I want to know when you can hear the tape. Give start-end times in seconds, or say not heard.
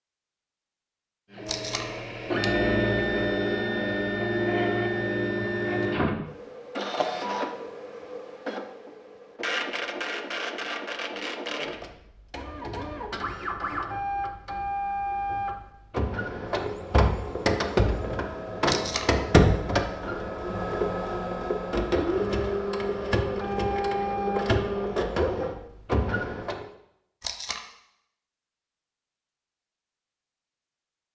1.4-1.9, 18.6-19.1, 27.2-27.6.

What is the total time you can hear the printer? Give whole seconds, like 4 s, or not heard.
25 s.